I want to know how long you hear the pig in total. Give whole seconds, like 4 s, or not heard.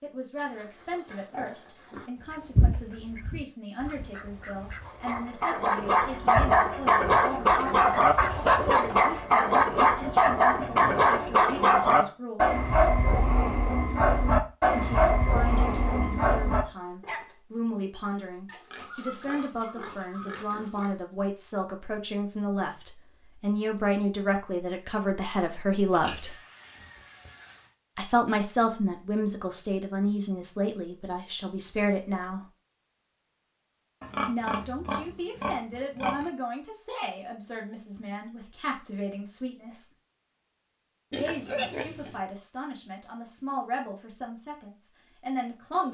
11 s.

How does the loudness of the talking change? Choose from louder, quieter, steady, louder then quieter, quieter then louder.
louder then quieter.